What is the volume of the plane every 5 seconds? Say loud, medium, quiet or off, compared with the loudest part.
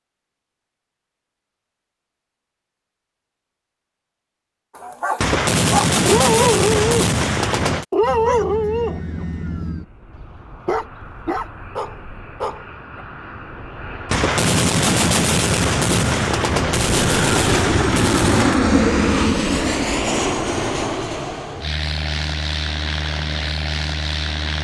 off, quiet, quiet, loud, medium.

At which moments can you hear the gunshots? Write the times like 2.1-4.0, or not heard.
5.2-7.8, 14.1-18.6.